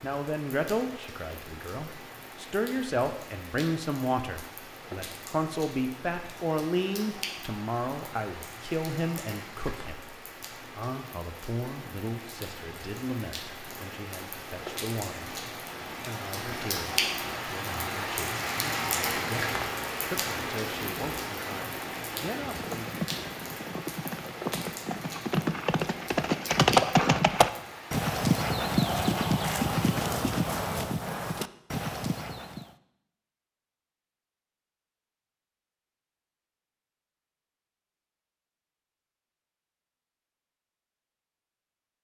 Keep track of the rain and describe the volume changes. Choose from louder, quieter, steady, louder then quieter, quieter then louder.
louder then quieter.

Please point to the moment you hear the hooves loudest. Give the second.
27 s.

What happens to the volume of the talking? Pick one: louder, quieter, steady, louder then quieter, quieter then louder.
quieter.